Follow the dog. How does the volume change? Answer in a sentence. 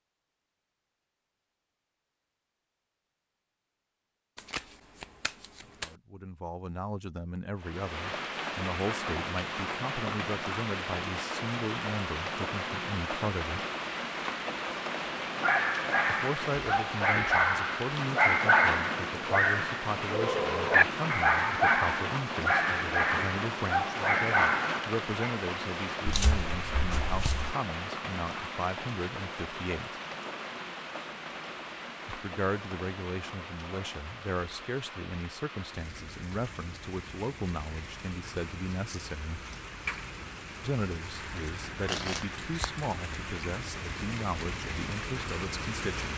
The volume of the dog stays about the same.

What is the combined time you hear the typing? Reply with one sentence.
You can't hear the typing here.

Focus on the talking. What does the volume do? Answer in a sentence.
The loudness of the talking stays about the same.